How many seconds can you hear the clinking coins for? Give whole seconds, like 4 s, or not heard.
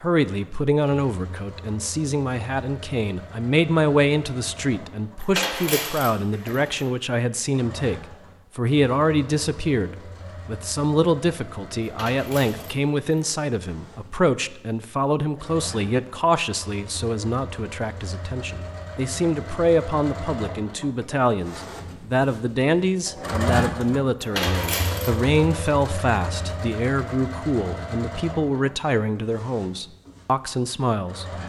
4 s.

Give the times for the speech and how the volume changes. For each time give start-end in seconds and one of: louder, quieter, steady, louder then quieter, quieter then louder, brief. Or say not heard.
0.0-31.2 steady.